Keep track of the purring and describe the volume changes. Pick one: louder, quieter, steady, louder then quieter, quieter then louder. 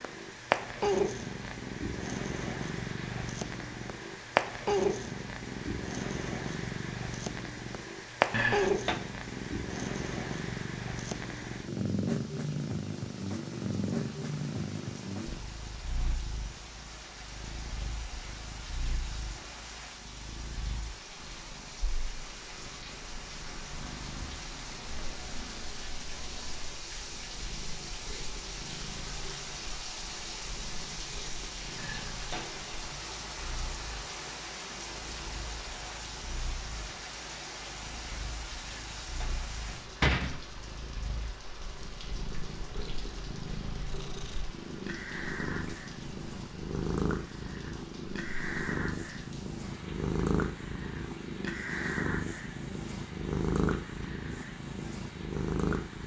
quieter then louder.